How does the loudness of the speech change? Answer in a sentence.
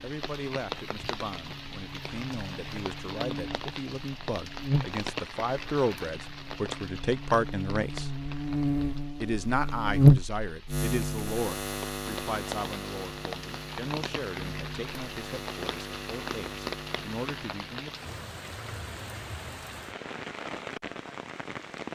The volume of the speech goes up, then down.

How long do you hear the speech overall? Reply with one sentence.
The speech can be heard for 17 seconds in total.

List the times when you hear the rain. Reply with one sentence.
The rain can be heard from 0.0 to 21.9 s.